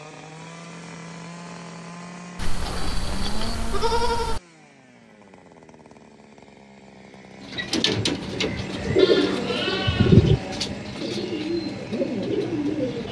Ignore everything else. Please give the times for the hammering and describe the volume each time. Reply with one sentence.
The hammering can't be heard in this clip.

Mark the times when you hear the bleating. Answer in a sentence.
The bleating can be heard from 2.4 to 4.4 s and from 8.9 to 10.6 s.